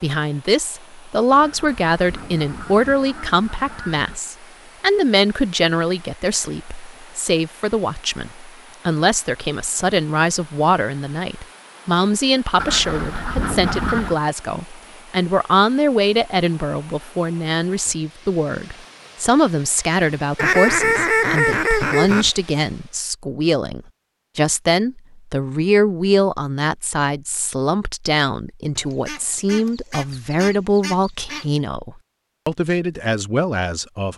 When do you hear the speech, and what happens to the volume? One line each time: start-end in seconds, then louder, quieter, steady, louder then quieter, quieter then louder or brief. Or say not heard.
0.0-34.1 steady.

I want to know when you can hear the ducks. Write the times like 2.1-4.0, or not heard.
1.3-4.2, 12.6-14.2, 20.4-22.3, 28.8-31.4.